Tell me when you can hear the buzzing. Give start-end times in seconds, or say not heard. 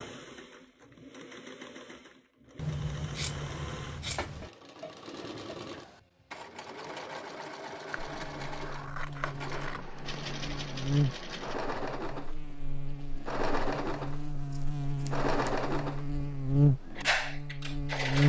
8.1-18.2.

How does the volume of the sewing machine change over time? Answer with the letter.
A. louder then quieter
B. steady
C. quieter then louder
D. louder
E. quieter
D.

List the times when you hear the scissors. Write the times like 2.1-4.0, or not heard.
2.5-4.5, 7.9-9.8, 14.5-15.5.